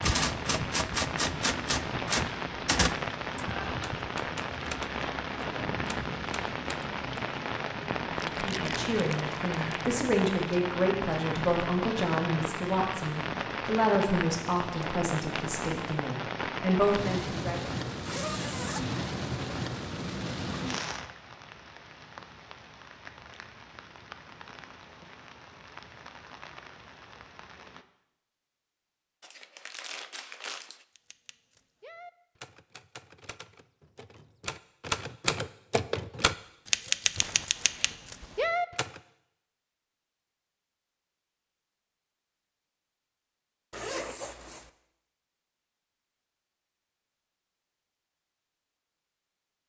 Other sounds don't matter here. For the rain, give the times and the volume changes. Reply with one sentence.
The rain can be heard from 0.0 to 27.9 s, getting quieter.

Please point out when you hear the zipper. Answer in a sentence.
You can hear the zipper from 18.0 to 19.0 s and from 43.7 to 44.7 s.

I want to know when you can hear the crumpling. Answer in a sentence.
The crumpling can be heard from 8.2 to 9.6 s, from 29.2 to 30.9 s and from 37.1 to 38.5 s.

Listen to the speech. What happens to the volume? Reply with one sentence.
The volume of the speech stays about the same.